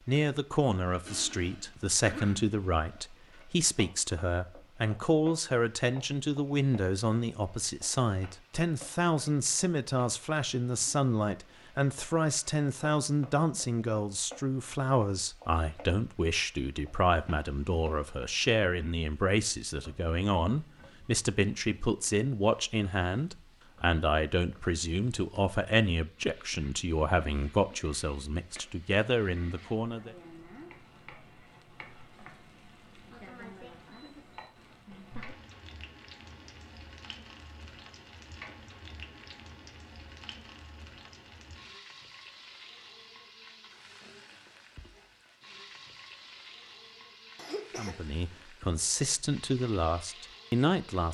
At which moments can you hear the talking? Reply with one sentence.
You can hear the talking from 0.1 to 30.1 s and from 47.8 to 51.0 s.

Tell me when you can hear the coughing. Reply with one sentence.
You can hear the coughing from 1.1 to 2.5 s and from 47.4 to 48.0 s.